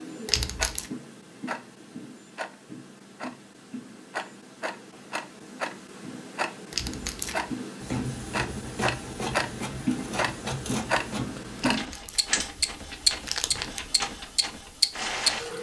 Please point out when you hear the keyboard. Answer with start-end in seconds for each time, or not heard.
not heard.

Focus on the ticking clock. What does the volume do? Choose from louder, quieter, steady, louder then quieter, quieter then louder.
louder.